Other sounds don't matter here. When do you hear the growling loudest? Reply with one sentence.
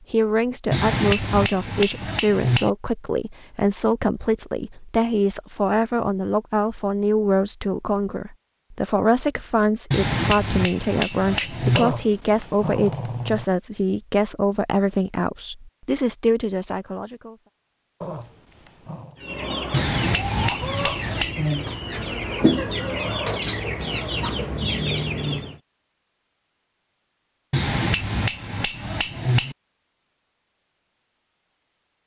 The loudest moment of the growling is at 12 seconds.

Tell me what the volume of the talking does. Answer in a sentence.
The loudness of the talking stays about the same.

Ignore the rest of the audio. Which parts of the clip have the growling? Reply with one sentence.
The growling can be heard from 11.8 to 13.4 s and from 18.0 to 19.2 s.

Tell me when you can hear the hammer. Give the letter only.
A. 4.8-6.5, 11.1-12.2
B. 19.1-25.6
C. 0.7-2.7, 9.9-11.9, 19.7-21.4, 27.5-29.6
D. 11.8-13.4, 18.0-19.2
C.